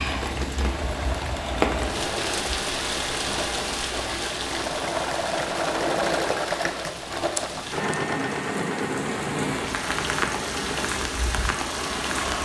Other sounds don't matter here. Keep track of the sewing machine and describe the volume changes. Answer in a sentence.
The loudness of the sewing machine goes up, then down.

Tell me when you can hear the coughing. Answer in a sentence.
You can't hear the coughing here.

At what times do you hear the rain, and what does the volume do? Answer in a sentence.
You can hear the rain from 0.0 to 12.3 s, getting quieter then louder.